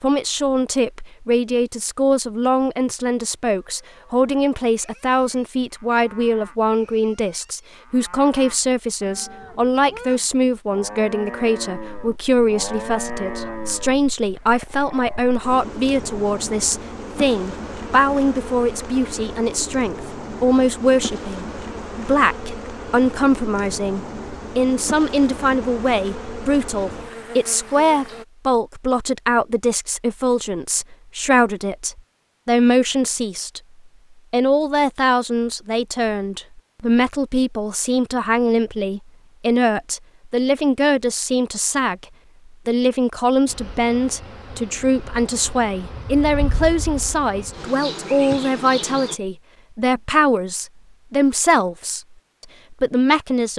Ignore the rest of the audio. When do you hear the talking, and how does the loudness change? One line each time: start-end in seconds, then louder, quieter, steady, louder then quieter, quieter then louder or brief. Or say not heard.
0.0-33.6 steady
34.3-42.0 steady
42.6-52.0 steady
52.7-53.5 brief.